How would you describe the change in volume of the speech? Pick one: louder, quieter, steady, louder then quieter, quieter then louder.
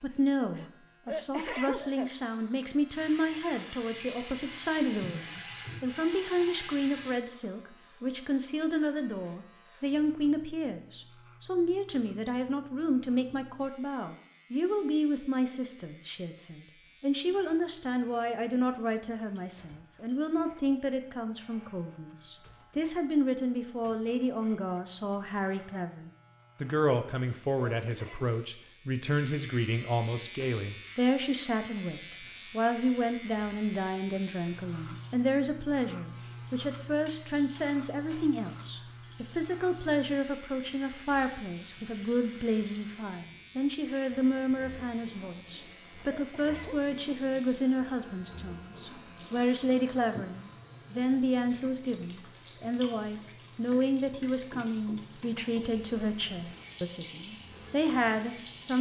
steady.